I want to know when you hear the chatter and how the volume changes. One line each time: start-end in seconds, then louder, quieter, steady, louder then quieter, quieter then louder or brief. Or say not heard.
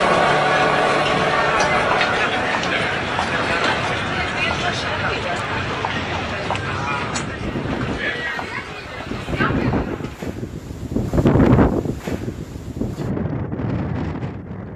0.0-10.2 quieter.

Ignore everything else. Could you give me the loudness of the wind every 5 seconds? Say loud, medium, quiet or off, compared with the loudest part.
medium, medium, loud.